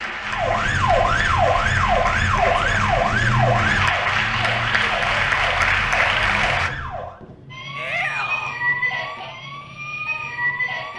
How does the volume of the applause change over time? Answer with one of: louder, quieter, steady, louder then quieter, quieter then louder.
louder.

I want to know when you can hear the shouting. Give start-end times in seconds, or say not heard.
7.8-8.6.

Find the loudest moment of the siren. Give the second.
3 s.